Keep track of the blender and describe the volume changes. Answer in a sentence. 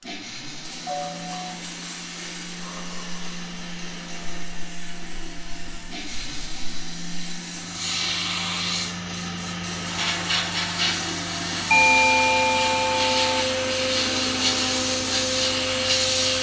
The volume of the blender goes up.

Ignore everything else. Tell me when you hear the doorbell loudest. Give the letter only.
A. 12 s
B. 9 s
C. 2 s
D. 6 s
A.